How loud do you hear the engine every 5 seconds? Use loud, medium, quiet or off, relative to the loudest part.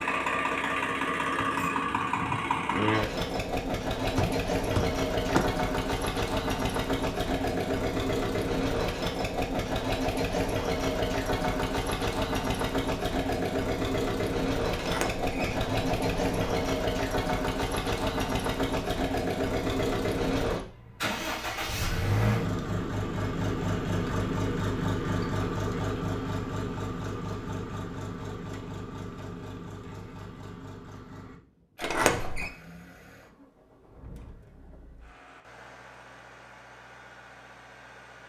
loud, loud, loud, loud, loud, medium, quiet, quiet.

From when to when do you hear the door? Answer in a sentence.
The door can be heard from 4.2 to 5.5 s, from 14.8 to 16.6 s and from 31.8 to 32.5 s.